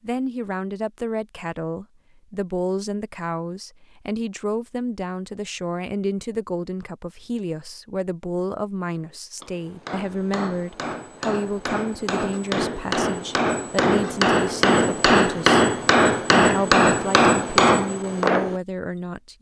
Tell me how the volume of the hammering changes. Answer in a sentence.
The loudness of the hammering goes up.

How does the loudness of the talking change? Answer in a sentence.
The loudness of the talking stays about the same.